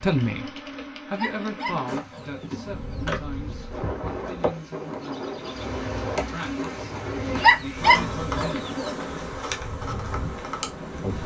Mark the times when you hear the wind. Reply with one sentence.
The wind can be heard from 2.6 to 11.2 s.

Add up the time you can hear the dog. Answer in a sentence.
You can hear the dog for 3 seconds altogether.